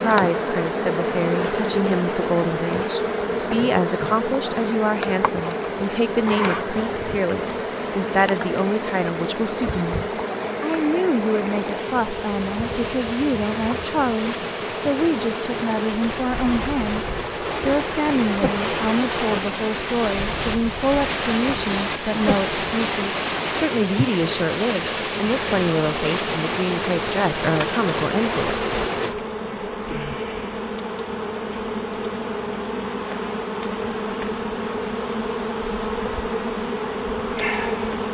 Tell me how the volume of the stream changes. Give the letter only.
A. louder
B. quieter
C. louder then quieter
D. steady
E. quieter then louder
A.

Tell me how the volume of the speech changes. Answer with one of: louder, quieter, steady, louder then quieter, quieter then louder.
steady.